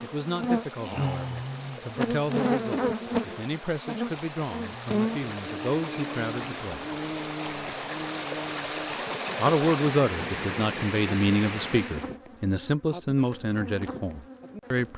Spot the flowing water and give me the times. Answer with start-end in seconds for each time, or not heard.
0.0-12.2.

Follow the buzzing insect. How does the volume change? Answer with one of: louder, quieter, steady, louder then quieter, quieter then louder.
quieter.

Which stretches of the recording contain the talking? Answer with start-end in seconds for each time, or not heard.
0.0-7.0, 9.3-14.9.